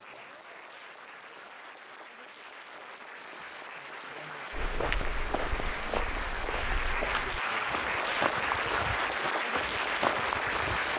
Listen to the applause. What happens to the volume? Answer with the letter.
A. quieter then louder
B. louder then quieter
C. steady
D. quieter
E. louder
E.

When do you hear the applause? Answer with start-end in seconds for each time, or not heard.
0.0-10.9.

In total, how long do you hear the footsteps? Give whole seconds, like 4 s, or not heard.
6 s.